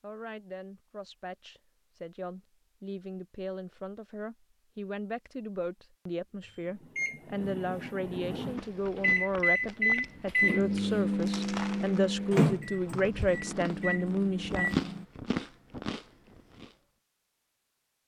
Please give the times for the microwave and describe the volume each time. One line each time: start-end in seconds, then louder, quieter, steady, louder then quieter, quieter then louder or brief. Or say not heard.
6.4-15.1 louder then quieter.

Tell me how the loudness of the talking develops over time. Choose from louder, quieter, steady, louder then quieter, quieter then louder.
louder.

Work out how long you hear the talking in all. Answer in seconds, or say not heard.
15 s.